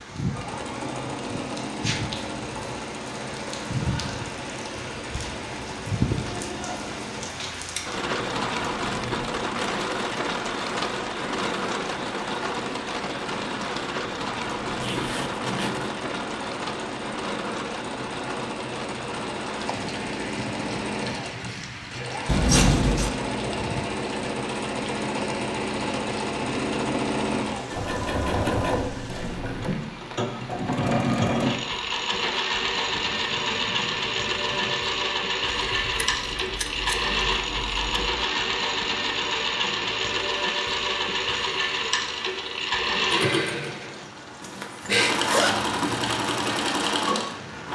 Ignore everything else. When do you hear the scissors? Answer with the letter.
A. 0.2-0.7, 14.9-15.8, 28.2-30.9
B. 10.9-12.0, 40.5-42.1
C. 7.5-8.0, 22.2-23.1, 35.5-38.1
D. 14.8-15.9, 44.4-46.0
C.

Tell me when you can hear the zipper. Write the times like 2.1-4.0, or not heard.
14.8-15.9, 44.4-46.0.